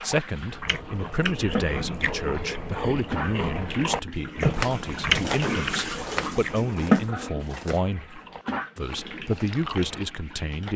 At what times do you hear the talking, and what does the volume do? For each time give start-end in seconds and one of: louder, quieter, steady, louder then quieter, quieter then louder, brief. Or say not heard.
0.0-10.7 steady.